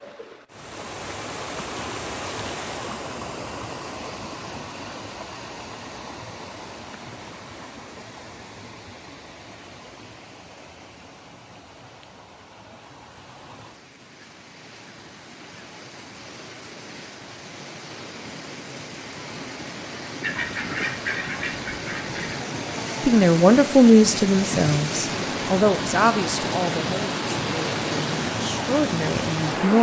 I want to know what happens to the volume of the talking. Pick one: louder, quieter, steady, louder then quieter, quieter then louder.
quieter then louder.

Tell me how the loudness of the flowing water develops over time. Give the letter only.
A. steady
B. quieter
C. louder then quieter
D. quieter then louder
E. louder
D.